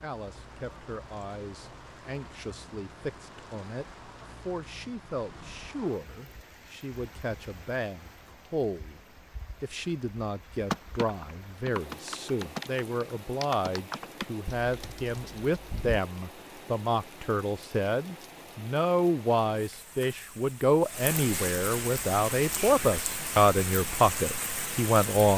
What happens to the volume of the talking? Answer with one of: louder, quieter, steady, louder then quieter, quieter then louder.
louder.